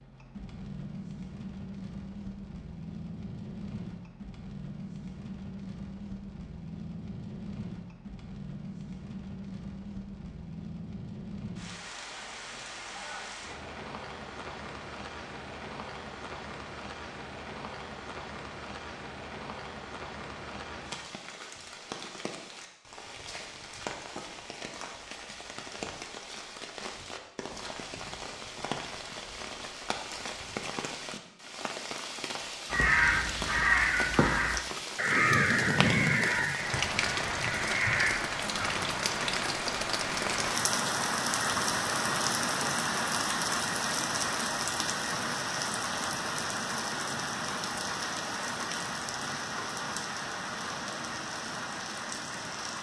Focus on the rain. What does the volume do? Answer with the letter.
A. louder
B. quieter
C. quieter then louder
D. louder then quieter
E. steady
A.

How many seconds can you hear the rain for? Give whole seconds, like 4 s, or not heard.
53 s.